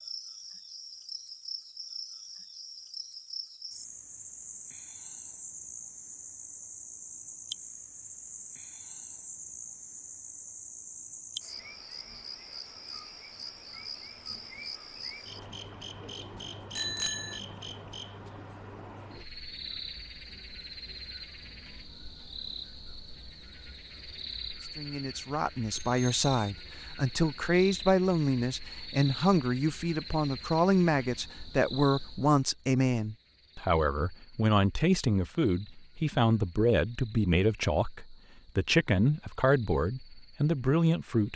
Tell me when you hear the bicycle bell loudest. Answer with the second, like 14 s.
17 s.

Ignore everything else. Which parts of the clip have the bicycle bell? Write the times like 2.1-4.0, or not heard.
16.8-17.4, 25.7-26.5.